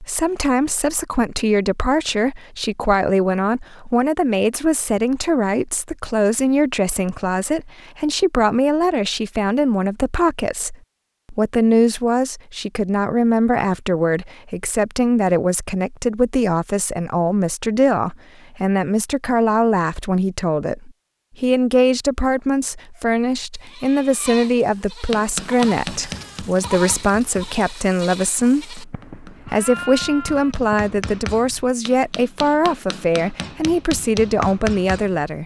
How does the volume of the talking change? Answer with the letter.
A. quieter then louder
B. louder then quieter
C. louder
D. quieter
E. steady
E.